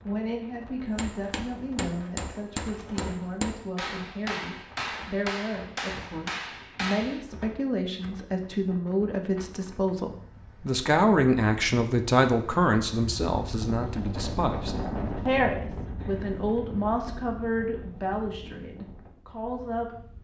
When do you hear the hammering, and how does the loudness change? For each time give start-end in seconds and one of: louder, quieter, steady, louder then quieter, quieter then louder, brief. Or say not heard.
0.9-7.2 steady.